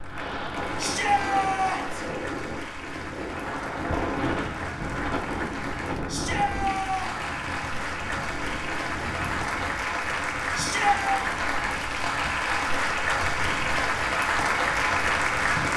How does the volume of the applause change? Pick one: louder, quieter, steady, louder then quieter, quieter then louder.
louder.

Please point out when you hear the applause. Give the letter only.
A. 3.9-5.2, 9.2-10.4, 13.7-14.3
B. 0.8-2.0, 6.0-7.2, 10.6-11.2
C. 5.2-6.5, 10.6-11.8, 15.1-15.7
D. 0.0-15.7
D.